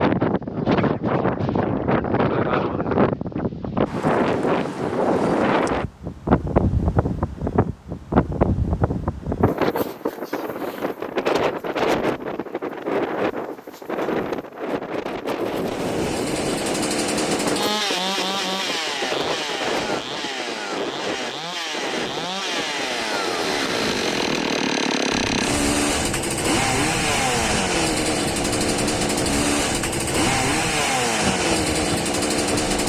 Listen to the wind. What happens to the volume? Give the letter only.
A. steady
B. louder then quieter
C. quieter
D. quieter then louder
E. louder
C.